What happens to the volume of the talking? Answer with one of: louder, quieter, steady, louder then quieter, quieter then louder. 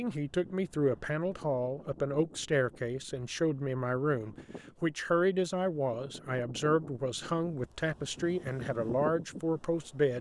steady.